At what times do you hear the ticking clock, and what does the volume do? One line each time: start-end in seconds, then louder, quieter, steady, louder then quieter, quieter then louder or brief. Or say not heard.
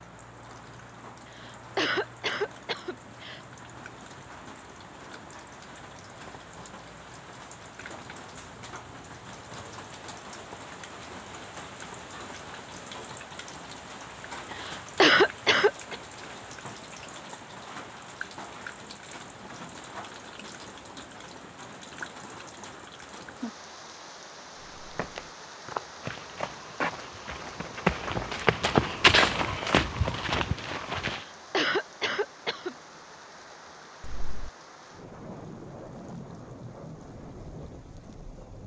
not heard.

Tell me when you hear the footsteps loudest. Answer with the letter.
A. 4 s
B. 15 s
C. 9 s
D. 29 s
D.